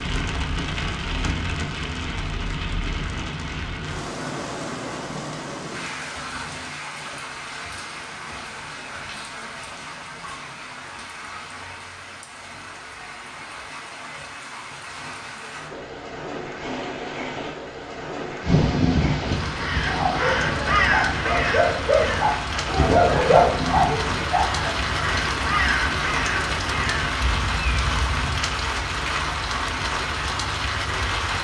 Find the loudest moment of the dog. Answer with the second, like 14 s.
23 s.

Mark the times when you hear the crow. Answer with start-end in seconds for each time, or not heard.
18.4-28.4.